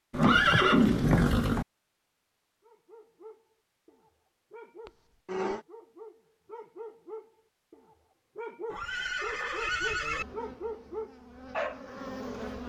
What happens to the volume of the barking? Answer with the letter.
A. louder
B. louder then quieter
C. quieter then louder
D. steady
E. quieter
A.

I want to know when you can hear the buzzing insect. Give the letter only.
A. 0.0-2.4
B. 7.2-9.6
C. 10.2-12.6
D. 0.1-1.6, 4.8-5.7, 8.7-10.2
C.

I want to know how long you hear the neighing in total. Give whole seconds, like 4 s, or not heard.
4 s.